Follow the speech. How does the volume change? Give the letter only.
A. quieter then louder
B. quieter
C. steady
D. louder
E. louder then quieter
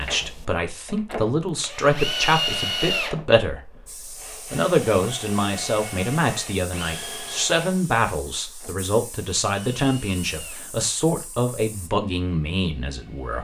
C.